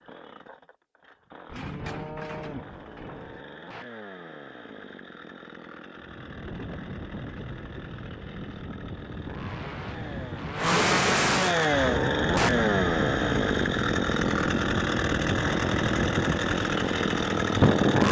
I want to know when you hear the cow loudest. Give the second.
2 s.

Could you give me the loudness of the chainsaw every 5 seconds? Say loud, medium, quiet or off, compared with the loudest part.
quiet, quiet, loud, loud.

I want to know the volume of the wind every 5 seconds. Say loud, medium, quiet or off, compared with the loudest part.
off, quiet, medium, loud.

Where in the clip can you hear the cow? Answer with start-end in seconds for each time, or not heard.
1.4-3.4.